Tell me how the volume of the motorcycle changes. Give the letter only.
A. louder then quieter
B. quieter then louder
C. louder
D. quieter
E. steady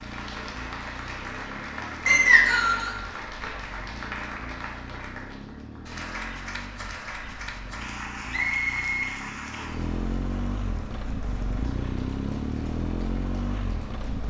C.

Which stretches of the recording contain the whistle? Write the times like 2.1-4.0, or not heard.
2.0-3.0, 8.3-9.8.